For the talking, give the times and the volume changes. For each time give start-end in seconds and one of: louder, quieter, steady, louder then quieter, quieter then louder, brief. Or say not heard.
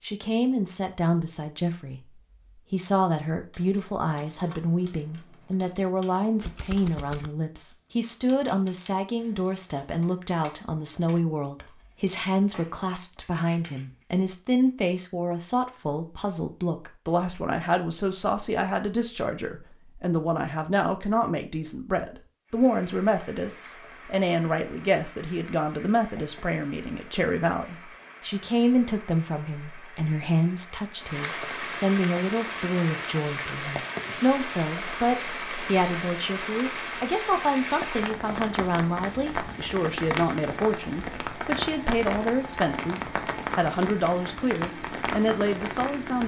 0.0-2.0 brief
2.7-46.2 steady.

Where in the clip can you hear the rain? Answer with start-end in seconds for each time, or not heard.
22.4-46.2.